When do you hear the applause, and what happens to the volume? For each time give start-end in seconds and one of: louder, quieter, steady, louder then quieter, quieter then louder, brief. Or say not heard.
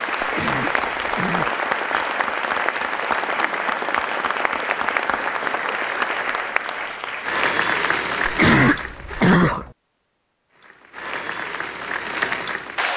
0.0-9.3 steady
10.6-12.9 brief.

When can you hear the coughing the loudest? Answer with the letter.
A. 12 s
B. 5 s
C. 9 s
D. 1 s
C.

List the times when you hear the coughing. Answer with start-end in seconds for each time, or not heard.
0.2-1.6, 8.2-9.7.